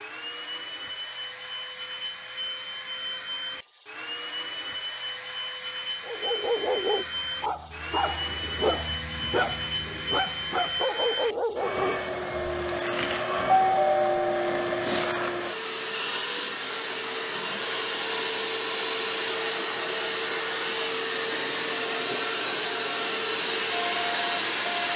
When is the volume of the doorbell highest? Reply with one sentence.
The volume of the doorbell peaks at 14 seconds.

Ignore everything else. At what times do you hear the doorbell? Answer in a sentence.
The doorbell can be heard from 13.6 to 15.1 s.